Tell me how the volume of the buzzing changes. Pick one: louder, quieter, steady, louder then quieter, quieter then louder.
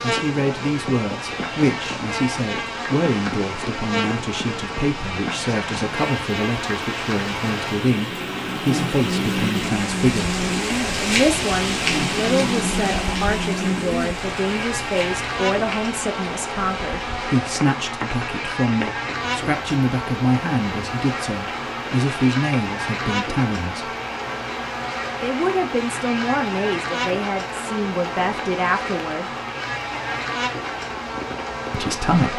steady.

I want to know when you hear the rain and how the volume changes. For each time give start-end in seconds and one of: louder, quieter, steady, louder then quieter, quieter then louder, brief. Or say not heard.
0.0-32.3 louder then quieter.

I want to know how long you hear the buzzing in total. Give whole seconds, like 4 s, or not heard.
32 s.